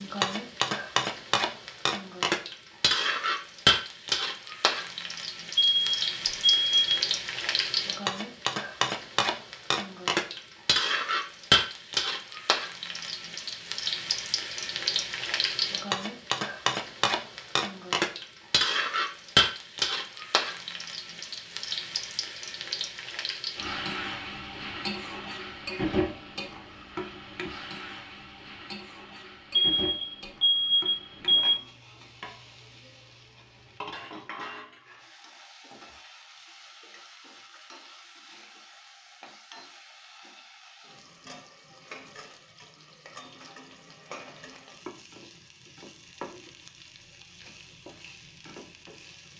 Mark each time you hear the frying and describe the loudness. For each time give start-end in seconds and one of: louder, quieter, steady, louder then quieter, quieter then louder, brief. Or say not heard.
0.0-49.3 quieter.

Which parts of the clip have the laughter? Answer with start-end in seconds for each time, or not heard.
not heard.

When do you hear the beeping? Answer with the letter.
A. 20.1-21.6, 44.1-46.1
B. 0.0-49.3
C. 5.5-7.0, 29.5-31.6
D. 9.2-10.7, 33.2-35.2
C.